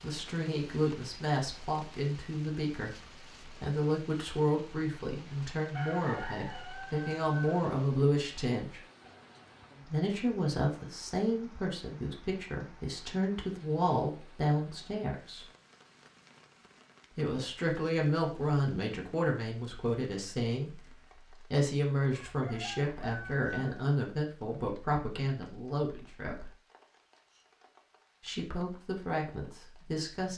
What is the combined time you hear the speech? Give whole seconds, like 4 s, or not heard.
26 s.